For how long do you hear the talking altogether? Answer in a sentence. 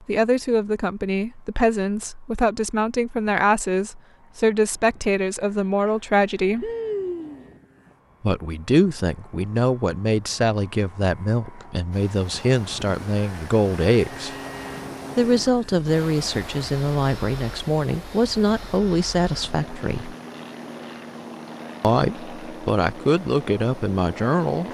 The talking can be heard for 21 seconds in total.